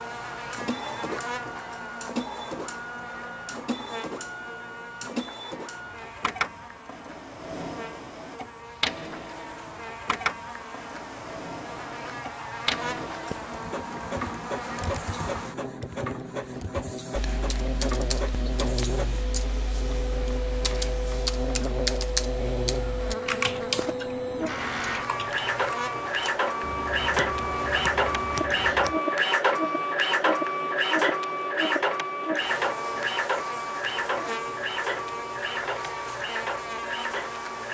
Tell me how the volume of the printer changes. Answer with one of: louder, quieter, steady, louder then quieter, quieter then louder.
louder.